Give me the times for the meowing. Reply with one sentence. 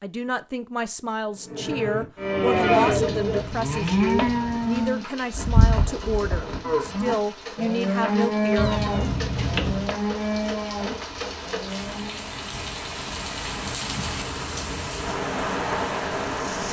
You can hear the meowing from 2.9 to 4.9 s and from 8.6 to 9.9 s.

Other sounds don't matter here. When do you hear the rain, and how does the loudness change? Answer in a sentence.
You can hear the rain from 2.5 to 16.6 s, getting louder.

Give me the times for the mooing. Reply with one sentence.
You can hear the mooing from 1.2 to 12.3 s.